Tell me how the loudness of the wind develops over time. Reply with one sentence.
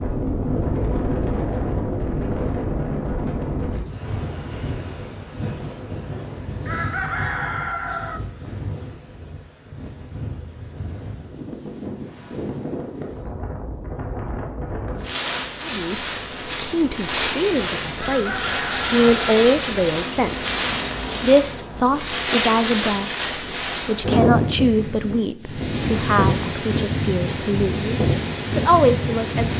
The volume of the wind goes down, then up.